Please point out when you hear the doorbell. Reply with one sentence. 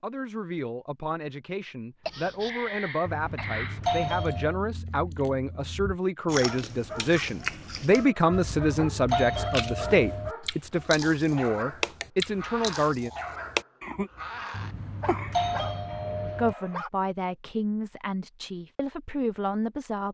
The doorbell can be heard from 3.0 to 4.5 s, from 8.3 to 10.3 s and from 14.5 to 16.6 s.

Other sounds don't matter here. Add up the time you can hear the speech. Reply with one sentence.
You can hear the speech for 17 seconds altogether.